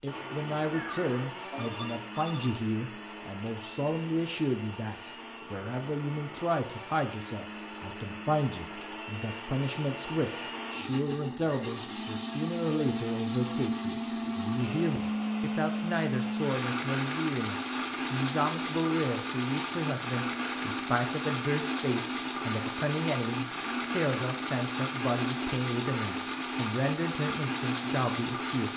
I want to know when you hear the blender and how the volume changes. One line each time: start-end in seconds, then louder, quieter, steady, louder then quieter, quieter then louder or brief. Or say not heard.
0.1-28.7 louder.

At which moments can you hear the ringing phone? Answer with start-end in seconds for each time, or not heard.
0.7-2.5.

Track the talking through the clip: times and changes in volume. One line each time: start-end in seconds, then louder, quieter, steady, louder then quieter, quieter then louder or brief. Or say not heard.
0.0-28.7 steady.